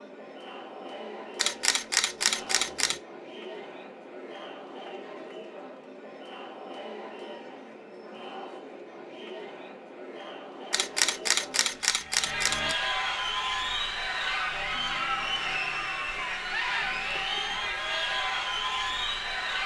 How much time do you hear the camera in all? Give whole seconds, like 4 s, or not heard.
4 s.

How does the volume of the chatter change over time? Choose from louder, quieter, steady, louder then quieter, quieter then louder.
louder.